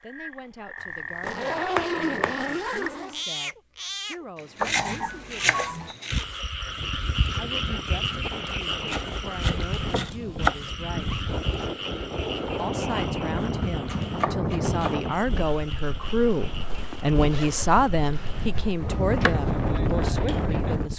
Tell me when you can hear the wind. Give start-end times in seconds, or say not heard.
6.7-20.9.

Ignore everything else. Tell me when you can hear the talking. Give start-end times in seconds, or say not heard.
0.0-5.8, 7.3-11.2, 12.6-20.9.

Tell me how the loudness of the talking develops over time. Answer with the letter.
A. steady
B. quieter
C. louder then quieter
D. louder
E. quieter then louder
D.